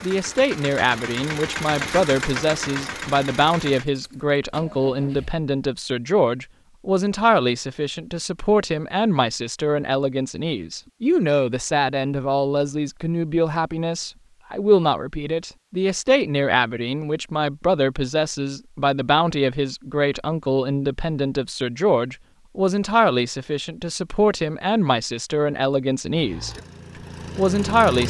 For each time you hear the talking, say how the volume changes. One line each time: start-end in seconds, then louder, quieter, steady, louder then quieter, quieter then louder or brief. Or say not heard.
0.0-26.6 steady
27.4-28.0 brief.